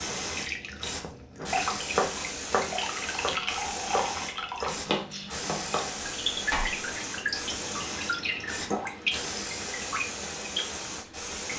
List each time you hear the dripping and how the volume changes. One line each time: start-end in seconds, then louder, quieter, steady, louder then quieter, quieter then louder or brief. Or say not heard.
0.1-11.5 steady.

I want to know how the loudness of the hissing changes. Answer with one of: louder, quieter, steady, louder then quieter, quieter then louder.
steady.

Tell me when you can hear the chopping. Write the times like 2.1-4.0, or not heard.
1.4-6.8.